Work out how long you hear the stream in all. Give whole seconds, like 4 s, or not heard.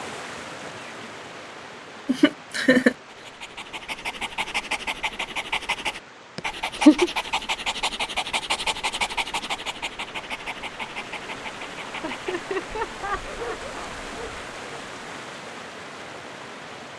17 s.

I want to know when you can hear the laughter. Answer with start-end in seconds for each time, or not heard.
2.0-3.0, 6.3-7.1, 12.1-13.9.